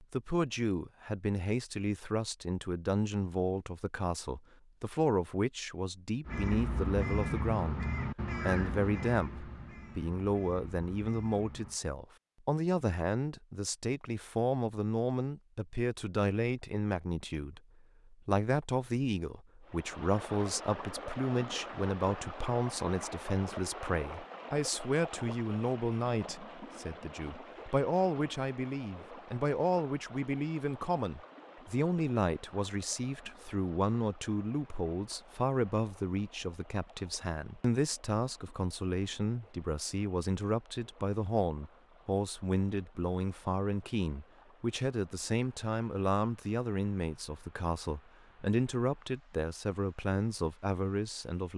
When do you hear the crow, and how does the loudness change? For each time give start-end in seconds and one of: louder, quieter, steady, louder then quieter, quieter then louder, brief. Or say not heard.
6.2-11.8 quieter.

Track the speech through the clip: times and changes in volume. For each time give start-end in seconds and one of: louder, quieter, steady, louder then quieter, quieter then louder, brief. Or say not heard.
0.0-51.5 steady.